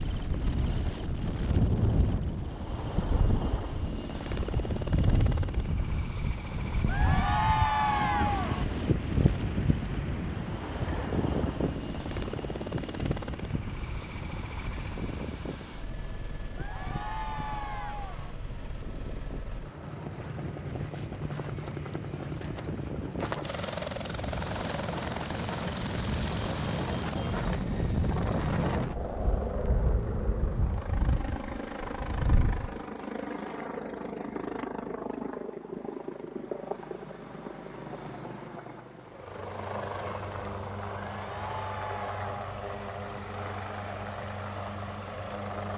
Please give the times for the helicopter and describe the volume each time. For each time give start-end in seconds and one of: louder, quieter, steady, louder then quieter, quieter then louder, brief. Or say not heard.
0.0-45.7 steady.